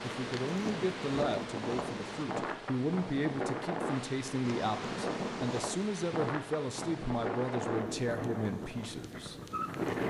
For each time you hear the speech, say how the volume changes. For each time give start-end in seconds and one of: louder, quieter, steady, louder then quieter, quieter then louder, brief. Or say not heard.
0.0-9.3 steady.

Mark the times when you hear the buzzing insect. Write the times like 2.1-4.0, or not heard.
0.0-2.2, 4.4-5.8.